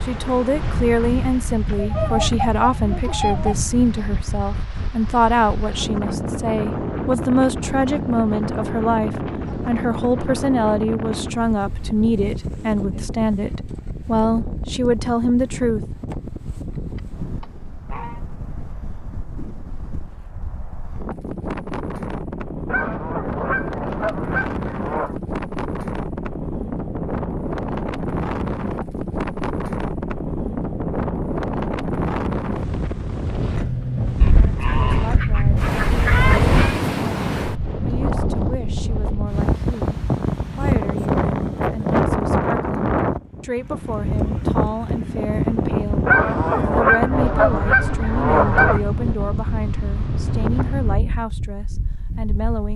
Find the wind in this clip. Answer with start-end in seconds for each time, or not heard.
0.0-52.7.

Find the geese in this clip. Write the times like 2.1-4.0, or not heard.
1.8-3.8, 16.7-18.2, 22.6-25.1, 34.2-36.8, 46.0-48.8.